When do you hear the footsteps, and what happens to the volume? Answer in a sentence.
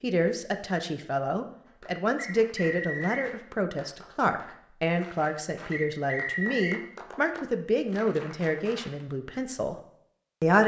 The footsteps can't be heard in this clip.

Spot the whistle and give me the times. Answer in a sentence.
The whistle can be heard from 2.1 to 3.3 s and from 5.7 to 6.8 s.